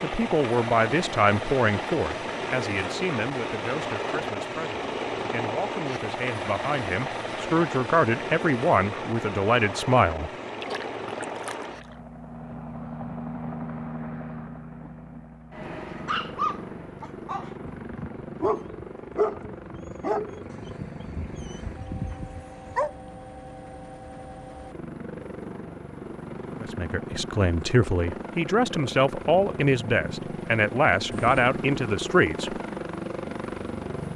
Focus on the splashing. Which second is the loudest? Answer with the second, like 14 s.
11 s.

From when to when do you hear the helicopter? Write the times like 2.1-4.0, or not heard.
0.0-34.1.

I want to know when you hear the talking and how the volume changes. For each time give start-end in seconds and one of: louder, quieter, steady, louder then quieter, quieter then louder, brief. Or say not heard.
0.0-10.3 quieter then louder
26.6-32.6 steady.